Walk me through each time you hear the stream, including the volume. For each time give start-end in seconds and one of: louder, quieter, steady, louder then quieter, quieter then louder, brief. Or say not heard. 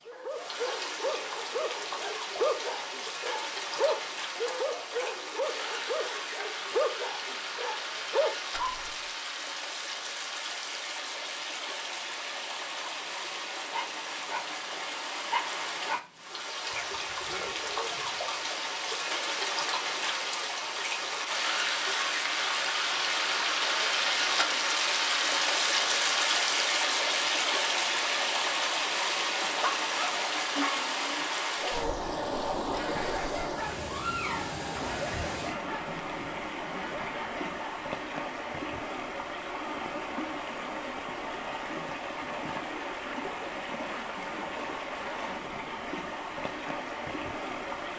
0.0-47.9 louder then quieter.